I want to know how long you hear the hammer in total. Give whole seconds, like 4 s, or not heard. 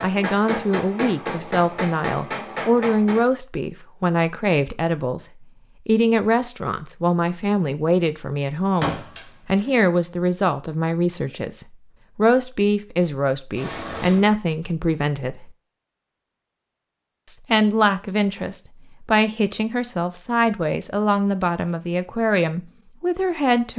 3 s.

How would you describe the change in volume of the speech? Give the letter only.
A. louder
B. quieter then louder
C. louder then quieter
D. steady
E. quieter
D.